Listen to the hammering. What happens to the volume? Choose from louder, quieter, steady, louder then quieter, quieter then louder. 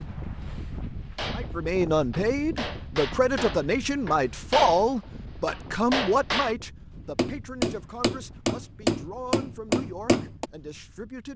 louder.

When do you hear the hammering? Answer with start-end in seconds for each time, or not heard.
1.1-10.4.